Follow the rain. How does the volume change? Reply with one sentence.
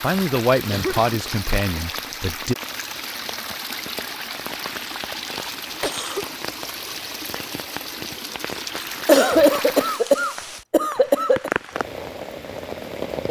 The loudness of the rain stays about the same.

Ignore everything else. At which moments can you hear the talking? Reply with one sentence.
The talking can be heard from 0.0 to 2.5 s.